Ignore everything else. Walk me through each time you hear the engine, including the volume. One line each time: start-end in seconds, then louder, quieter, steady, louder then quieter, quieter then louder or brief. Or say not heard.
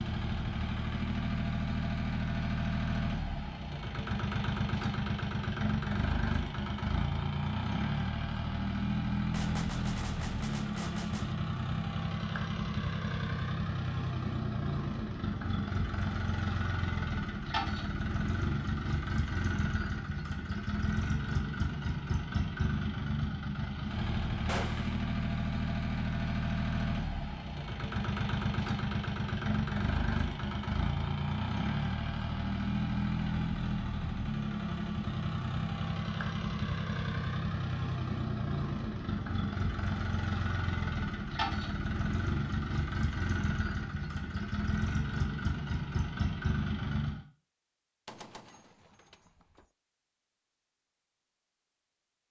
0.0-47.2 steady.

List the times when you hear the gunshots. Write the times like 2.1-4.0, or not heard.
9.3-11.3, 24.4-25.0, 48.0-49.6.